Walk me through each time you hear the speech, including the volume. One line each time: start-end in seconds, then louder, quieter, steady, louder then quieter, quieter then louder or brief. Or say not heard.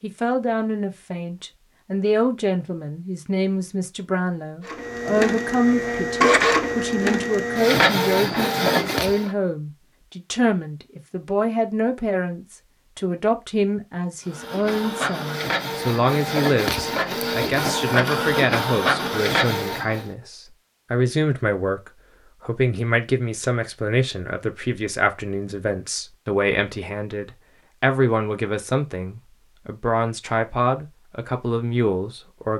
0.0-32.5 steady.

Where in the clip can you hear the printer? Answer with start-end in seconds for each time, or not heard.
4.7-9.3, 14.2-20.1.